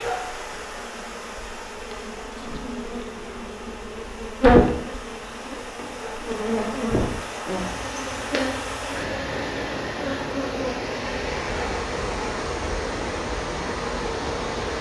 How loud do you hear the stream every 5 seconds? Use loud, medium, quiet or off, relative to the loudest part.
medium, loud, loud.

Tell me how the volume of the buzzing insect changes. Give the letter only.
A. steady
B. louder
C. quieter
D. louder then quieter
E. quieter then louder
D.